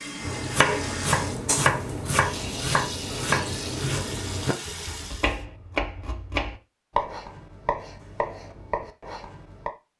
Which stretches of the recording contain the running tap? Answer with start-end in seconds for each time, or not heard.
0.0-5.5.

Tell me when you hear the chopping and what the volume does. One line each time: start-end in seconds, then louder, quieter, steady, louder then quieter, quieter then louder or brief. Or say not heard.
0.2-9.7 quieter.